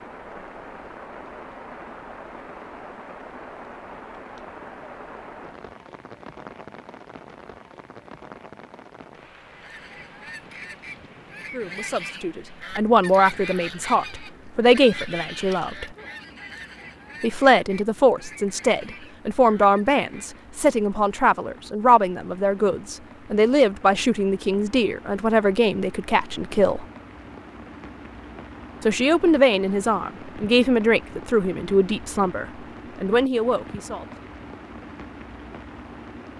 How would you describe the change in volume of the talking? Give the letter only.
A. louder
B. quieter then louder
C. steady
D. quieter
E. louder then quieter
C.